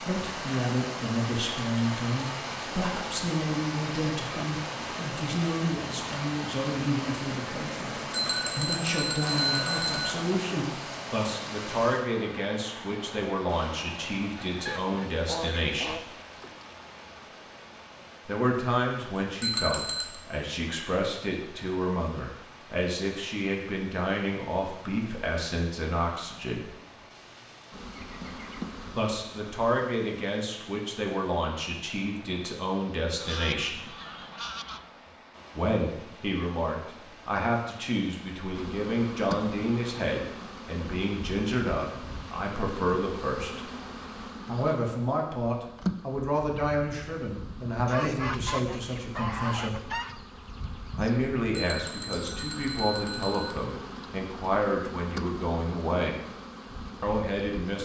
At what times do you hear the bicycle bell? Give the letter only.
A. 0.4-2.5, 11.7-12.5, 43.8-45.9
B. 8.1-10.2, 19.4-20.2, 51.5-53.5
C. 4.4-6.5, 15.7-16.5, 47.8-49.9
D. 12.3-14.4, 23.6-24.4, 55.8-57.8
B.